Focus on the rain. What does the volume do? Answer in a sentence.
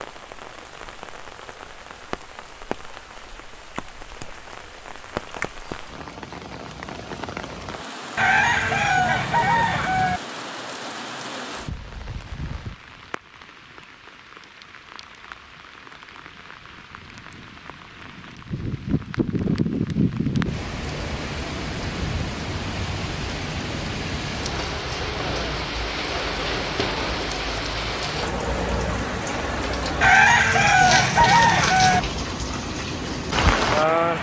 The volume of the rain goes up.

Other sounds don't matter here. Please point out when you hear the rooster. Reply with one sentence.
The rooster can be heard from 8.2 to 10.2 s and from 30.0 to 32.0 s.